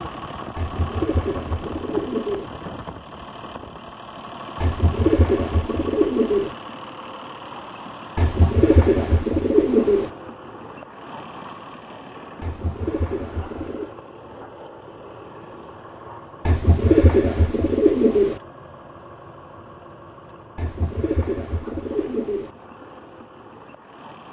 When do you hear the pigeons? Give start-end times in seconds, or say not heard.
0.6-2.5, 4.6-6.5, 8.2-10.1, 12.4-13.9, 16.4-18.4, 20.6-22.5.